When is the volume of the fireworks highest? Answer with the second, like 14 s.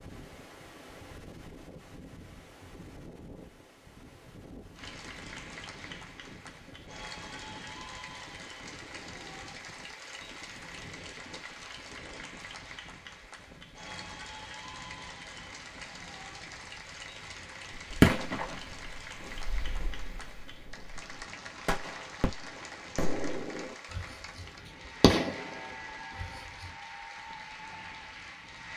18 s.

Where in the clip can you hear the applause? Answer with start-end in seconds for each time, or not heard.
4.8-28.7.